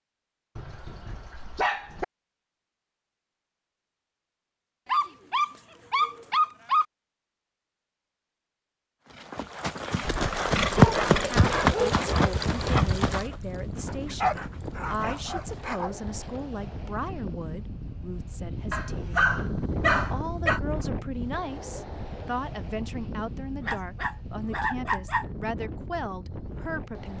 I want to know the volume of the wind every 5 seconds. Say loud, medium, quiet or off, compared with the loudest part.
off, off, loud, loud, loud, loud.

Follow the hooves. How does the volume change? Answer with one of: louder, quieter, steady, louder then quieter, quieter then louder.
quieter.